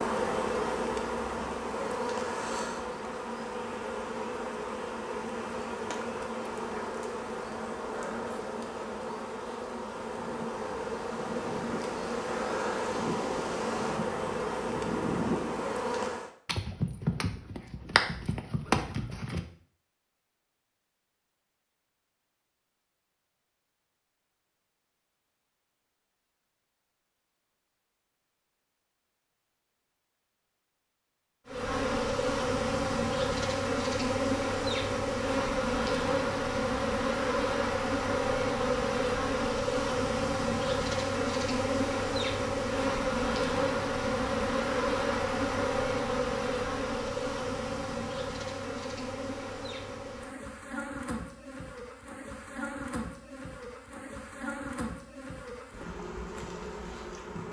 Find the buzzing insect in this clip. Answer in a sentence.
You can hear the buzzing insect from 0.0 to 16.3 s and from 31.4 to 57.4 s.